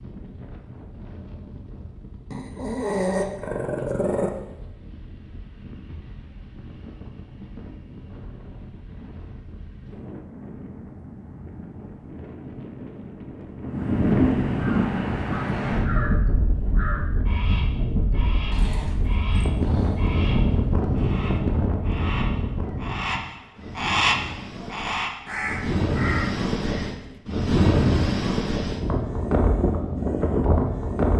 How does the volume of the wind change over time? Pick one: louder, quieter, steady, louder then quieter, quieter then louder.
louder.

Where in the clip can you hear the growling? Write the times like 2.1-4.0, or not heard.
2.3-4.3, 18.5-20.1.